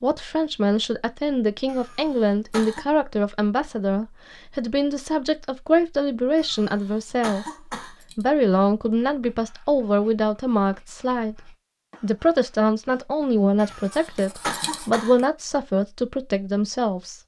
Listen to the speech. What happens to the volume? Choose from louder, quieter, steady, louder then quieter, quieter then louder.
steady.